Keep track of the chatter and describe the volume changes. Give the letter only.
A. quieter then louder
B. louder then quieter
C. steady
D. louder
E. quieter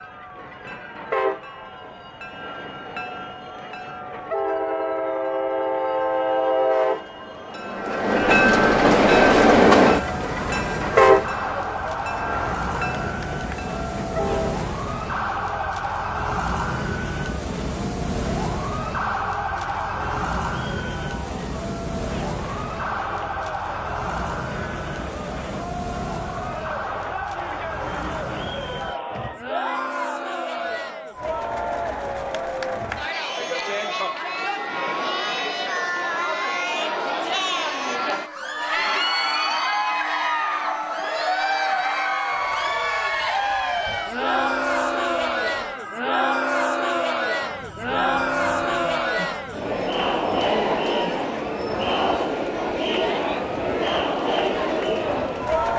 D.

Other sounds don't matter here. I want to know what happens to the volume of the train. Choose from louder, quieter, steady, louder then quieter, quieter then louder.
louder then quieter.